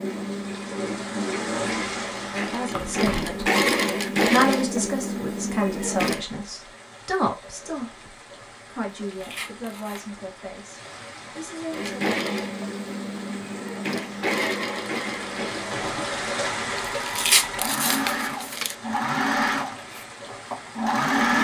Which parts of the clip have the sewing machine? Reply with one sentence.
The sewing machine can be heard from 0.0 to 6.2 s and from 11.7 to 21.3 s.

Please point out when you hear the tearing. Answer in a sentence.
The tearing can be heard from 2.7 to 3.5 s, from 9.1 to 10.1 s and from 17.0 to 18.8 s.